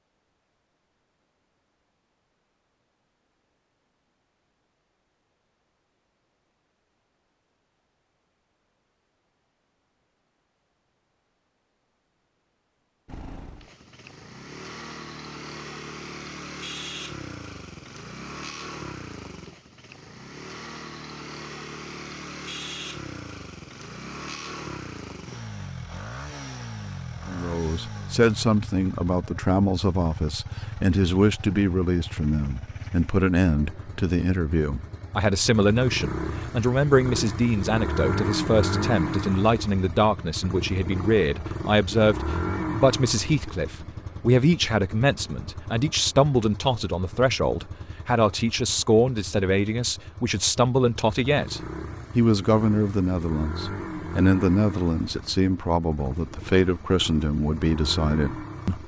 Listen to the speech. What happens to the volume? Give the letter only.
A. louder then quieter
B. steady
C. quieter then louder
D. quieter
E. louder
B.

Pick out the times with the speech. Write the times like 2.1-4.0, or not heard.
27.2-58.8.